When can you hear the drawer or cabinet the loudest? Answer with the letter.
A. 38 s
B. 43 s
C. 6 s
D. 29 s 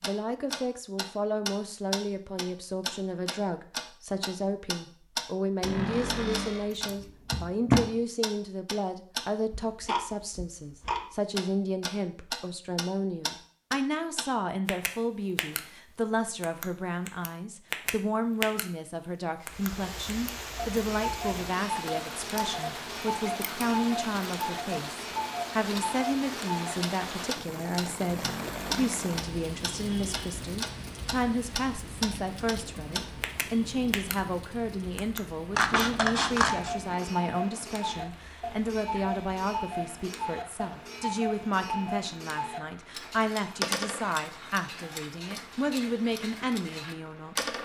C.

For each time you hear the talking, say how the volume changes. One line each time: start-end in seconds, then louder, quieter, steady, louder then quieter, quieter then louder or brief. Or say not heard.
0.0-47.5 steady.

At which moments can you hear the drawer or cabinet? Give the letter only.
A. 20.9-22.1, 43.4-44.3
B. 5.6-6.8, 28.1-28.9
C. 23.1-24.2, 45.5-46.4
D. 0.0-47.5
B.